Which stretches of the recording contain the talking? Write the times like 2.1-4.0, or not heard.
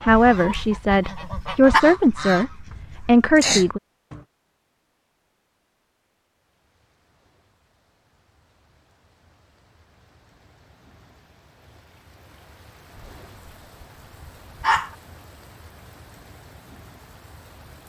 0.0-3.8.